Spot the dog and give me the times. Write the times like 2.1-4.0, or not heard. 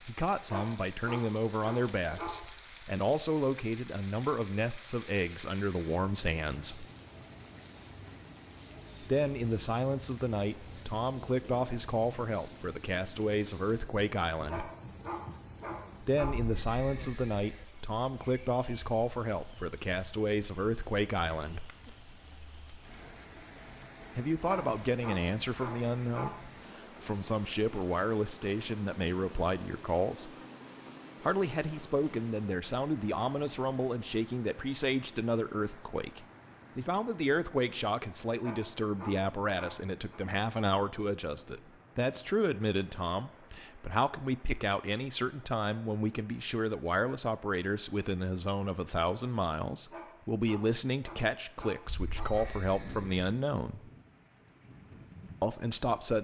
0.5-2.4, 14.4-16.4, 24.4-26.4, 38.4-40.2, 49.9-52.5.